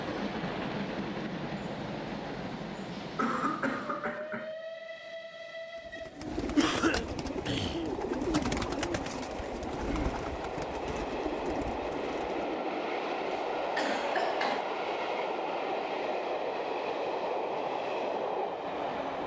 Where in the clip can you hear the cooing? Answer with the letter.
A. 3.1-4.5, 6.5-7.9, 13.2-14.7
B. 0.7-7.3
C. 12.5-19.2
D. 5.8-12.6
D.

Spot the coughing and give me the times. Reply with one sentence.
The coughing can be heard from 3.1 to 4.5 s, from 6.5 to 7.9 s and from 13.2 to 14.7 s.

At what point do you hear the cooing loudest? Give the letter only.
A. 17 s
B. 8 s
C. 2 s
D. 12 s
B.